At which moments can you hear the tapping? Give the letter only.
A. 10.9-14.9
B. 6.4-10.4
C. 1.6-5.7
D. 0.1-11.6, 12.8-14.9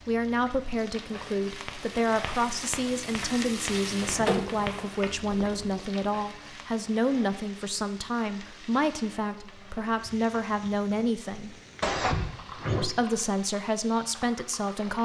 C.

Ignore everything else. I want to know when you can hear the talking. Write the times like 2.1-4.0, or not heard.
0.1-11.6, 12.8-14.9.